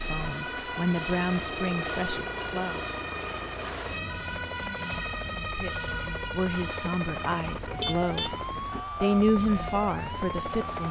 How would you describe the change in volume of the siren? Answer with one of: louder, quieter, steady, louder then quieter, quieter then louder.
steady.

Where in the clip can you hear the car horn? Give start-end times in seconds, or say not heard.
7.7-8.8.